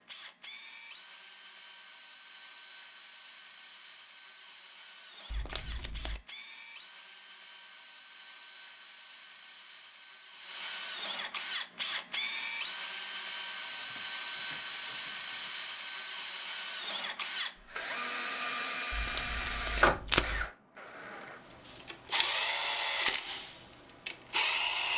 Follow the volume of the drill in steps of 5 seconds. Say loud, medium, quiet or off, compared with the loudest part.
quiet, quiet, loud, loud, loud.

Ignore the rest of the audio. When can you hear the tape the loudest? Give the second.
20 s.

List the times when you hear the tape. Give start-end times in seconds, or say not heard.
5.3-6.2, 18.9-20.4.